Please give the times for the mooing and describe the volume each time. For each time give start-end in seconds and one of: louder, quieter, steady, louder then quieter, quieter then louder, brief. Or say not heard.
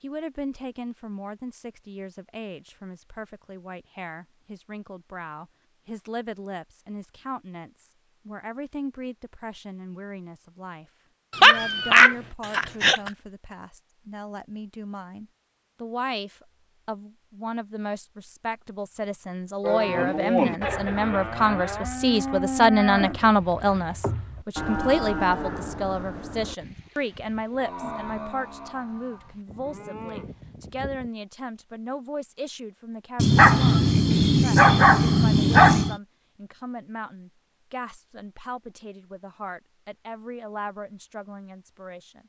19.6-31.1 quieter.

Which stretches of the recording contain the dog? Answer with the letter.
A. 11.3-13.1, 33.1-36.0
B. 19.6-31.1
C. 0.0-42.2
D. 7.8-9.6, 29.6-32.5
A.